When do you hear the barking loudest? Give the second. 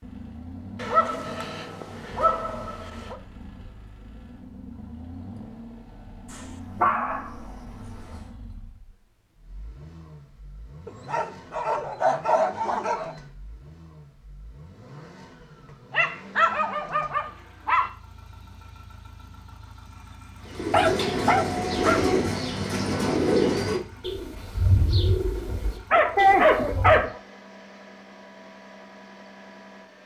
26 s.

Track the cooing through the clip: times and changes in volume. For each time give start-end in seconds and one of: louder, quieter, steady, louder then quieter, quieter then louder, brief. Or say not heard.
20.4-27.1 quieter.